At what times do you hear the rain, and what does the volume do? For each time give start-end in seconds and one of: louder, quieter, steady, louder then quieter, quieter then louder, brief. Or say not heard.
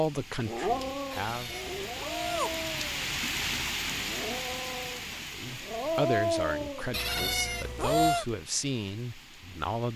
0.0-9.9 louder then quieter.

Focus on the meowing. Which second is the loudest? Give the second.
8 s.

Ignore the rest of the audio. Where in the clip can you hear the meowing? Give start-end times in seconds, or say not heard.
1.1-2.6, 6.9-8.2.